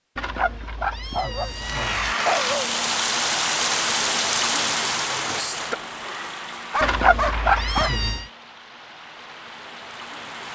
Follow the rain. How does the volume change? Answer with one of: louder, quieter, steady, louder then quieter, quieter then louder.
quieter.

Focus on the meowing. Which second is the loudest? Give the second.
7 s.